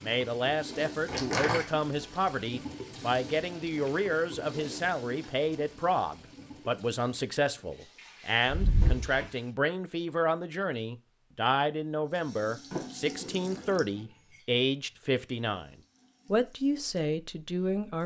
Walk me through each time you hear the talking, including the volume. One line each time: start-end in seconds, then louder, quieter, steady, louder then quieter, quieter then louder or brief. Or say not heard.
0.0-18.0 steady.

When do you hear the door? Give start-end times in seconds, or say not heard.
1.1-1.6, 8.4-9.2, 12.7-13.8.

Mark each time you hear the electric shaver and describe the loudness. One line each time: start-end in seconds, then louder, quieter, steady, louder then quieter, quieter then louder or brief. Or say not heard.
not heard.